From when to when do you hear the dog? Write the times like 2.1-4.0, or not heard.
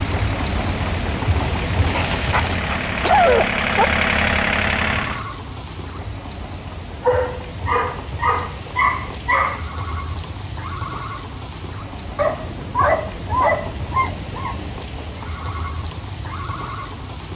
1.9-3.9, 7.0-9.7, 12.2-14.7.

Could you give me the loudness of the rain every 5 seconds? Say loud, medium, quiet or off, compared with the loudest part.
loud, medium, medium, medium.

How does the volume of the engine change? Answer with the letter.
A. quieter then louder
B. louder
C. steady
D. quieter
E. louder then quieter
B.